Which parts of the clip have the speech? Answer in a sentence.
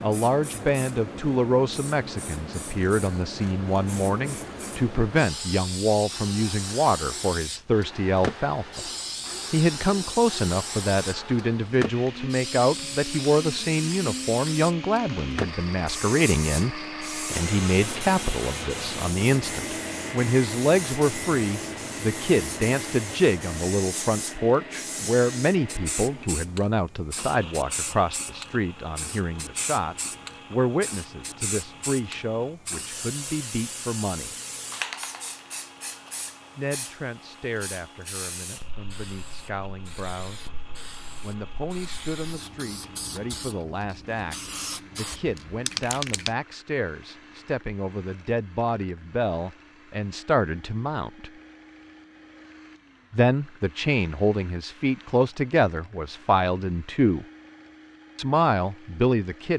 You can hear the speech from 0.0 to 8.8 s, from 9.5 to 34.4 s, from 36.5 to 40.5 s, from 41.2 to 51.3 s, from 53.1 to 57.2 s and from 58.1 to 59.5 s.